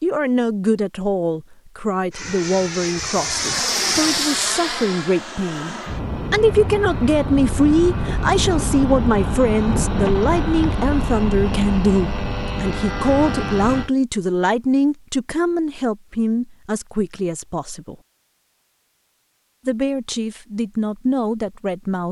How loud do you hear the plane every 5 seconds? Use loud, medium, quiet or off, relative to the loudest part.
loud, loud, loud, off, off.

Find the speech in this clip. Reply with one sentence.
You can hear the speech from 0.0 to 18.0 s and from 19.6 to 22.0 s.